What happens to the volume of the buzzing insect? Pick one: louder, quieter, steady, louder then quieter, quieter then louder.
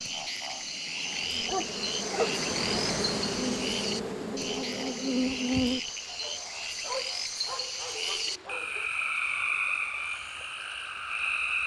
louder then quieter.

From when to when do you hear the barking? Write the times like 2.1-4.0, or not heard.
1.4-2.4, 6.0-8.9.